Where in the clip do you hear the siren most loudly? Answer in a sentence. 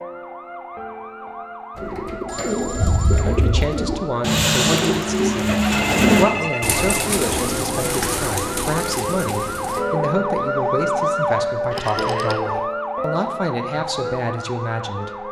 The loudest moment of the siren is at 11 seconds.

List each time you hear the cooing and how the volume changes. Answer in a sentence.
You can hear the cooing from 1.8 to 9.8 s, getting louder then quieter.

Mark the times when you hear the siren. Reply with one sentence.
The siren can be heard from 0.0 to 15.2 s.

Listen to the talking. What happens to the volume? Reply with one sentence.
The loudness of the talking stays about the same.